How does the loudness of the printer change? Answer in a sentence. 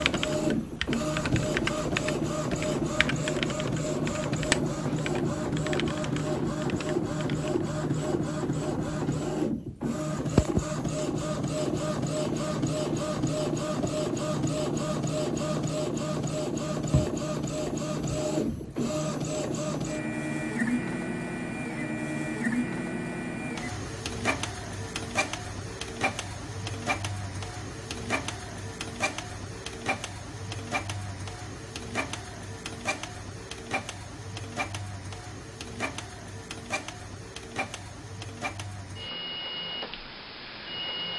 The volume of the printer goes down.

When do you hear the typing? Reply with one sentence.
The typing can be heard from 0.0 to 7.7 s.